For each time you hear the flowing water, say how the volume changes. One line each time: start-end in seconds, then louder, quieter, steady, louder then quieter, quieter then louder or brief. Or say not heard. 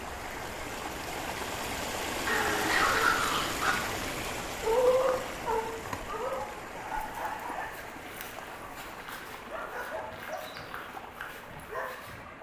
0.0-12.3 quieter.